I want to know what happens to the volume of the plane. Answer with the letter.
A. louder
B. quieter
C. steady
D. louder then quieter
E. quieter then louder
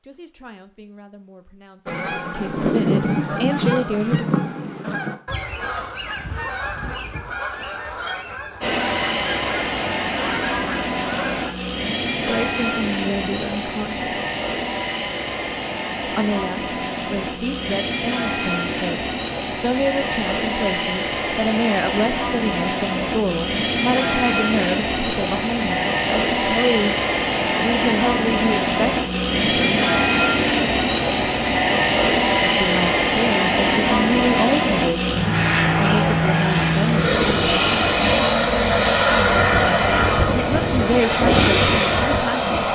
A.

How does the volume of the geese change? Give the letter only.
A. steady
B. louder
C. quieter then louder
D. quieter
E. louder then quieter
D.